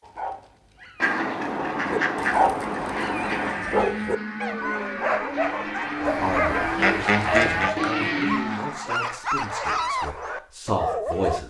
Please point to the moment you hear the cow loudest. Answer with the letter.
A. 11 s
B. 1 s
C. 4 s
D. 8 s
D.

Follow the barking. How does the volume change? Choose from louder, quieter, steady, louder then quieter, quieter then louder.
steady.